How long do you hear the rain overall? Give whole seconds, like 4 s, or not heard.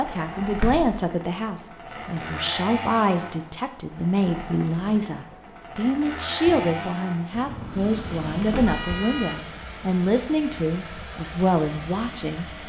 not heard.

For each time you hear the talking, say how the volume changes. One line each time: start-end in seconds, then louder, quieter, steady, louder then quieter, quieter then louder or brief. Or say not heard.
0.0-12.4 steady.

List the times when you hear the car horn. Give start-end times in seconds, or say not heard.
7.3-9.3.